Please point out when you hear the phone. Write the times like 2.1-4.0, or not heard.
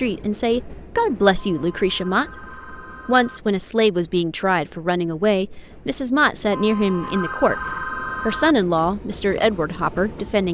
1.4-3.4, 6.5-8.6.